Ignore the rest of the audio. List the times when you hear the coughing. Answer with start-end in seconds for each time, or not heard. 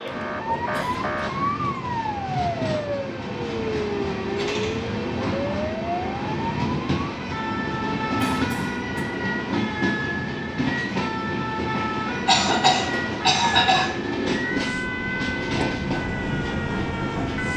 0.6-1.0, 8.2-8.8, 12.2-13.8.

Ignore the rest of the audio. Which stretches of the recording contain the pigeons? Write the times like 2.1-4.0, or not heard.
not heard.